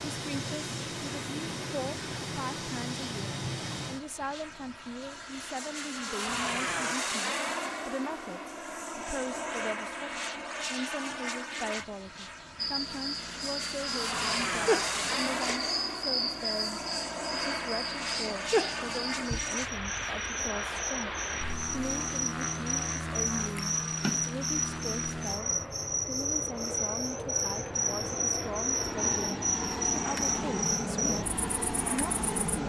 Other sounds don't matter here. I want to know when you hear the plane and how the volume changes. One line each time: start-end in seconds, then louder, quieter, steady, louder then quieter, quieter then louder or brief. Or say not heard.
0.0-32.6 steady.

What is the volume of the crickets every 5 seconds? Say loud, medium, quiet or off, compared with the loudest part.
off, off, loud, loud, loud, loud, loud.